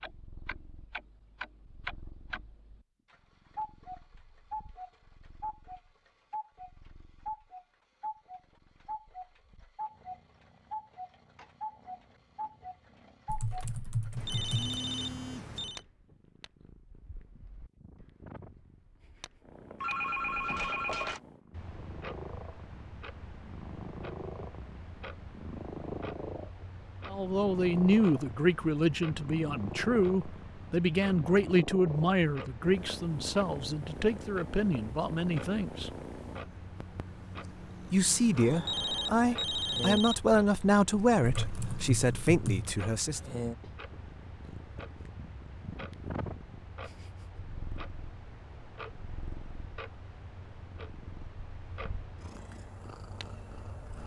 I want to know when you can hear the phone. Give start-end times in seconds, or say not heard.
14.2-15.8, 19.8-21.2, 38.4-40.1.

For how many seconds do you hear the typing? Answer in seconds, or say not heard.
3 s.